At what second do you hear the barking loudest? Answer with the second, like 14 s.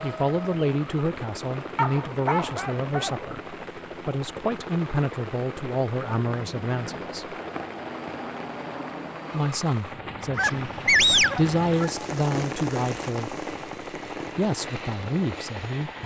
11 s.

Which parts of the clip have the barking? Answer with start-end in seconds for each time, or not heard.
1.8-3.3, 10.3-12.1.